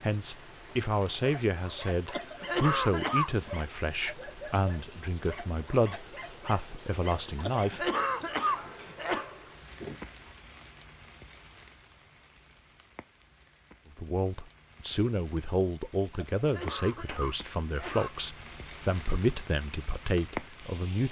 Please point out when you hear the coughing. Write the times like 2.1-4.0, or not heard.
2.0-3.5, 7.3-9.2, 16.1-18.1.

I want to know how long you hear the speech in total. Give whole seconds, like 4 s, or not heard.
15 s.